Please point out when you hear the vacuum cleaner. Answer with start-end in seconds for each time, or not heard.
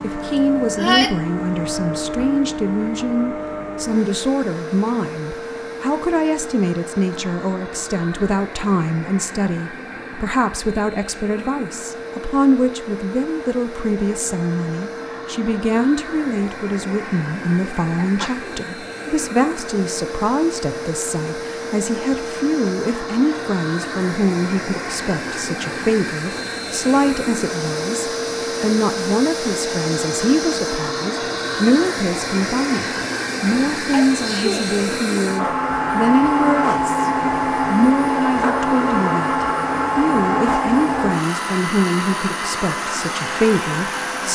0.0-44.3.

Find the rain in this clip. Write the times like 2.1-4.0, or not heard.
not heard.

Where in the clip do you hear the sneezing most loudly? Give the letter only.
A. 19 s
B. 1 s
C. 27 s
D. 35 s
B.